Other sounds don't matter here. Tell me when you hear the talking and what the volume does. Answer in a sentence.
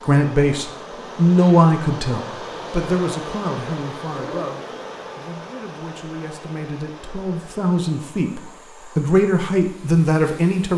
You can hear the talking from 0.0 to 10.7 s, getting quieter then louder.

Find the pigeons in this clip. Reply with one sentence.
The pigeons can be heard from 4.1 to 5.0 s.